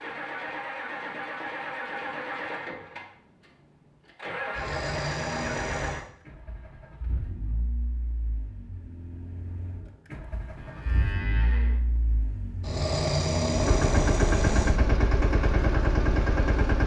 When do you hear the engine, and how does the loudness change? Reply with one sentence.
You can hear the engine from 0.0 to 16.8 s, getting quieter then louder.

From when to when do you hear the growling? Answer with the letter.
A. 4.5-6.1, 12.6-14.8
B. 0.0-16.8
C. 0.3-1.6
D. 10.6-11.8
A.